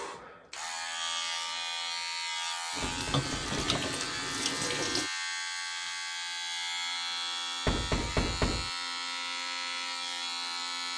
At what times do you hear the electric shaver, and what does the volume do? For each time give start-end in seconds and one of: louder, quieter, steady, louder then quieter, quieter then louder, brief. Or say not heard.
0.0-10.9 steady.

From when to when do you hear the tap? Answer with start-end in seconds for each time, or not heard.
2.7-5.1.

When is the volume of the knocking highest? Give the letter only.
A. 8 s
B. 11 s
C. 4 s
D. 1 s
A.